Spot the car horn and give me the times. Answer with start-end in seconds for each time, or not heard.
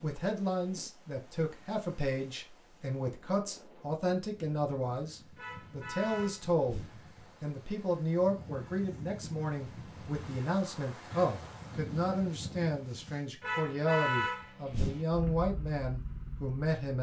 5.3-7.0, 13.4-15.1.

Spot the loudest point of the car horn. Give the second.
14 s.